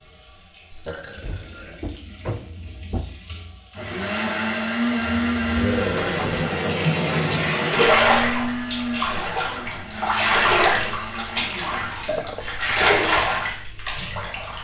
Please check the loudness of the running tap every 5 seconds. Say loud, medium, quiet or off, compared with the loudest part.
quiet, loud, loud.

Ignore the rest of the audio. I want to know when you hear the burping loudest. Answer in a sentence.
The volume of the burping peaks at 6 seconds.